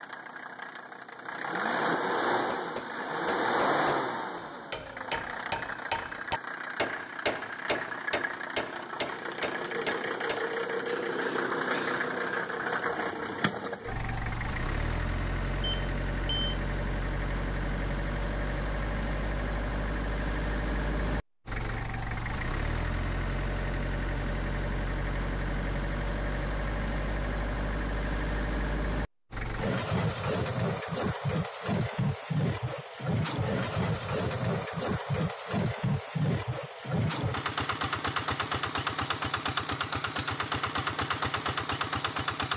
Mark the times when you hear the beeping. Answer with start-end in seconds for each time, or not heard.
15.6-16.6.